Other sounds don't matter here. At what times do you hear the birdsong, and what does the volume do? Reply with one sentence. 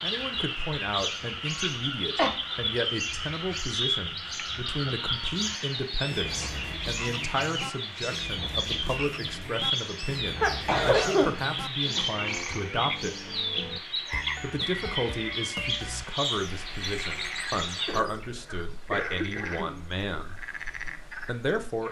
You can hear the birdsong from 0.0 to 18.3 s, at a steady volume.